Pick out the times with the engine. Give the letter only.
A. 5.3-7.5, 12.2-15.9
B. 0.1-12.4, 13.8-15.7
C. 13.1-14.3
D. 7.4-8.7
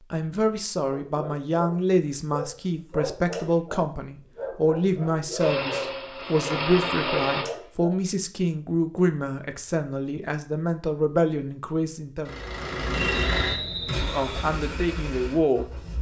A.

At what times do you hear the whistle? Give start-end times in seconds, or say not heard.
13.1-14.3.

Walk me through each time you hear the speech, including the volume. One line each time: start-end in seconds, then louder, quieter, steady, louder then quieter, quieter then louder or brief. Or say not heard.
0.1-12.4 steady
13.8-15.7 brief.